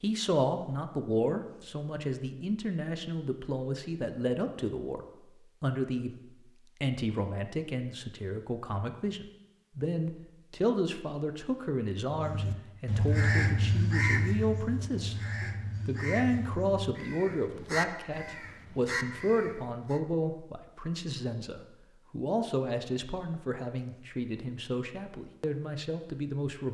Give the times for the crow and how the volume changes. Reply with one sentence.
You can hear the crow from 12.1 to 20.0 s, getting quieter.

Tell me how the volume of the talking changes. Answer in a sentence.
The volume of the talking stays about the same.